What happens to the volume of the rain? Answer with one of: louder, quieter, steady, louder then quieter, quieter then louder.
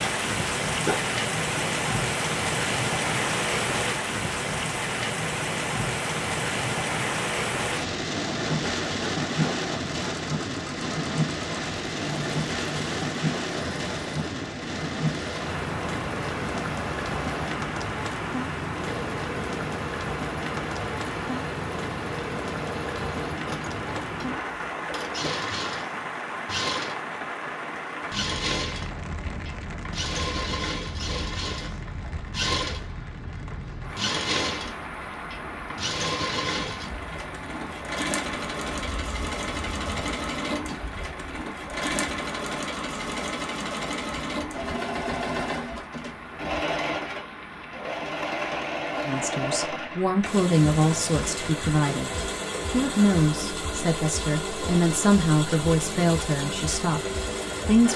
quieter.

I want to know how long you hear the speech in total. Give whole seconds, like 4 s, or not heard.
9 s.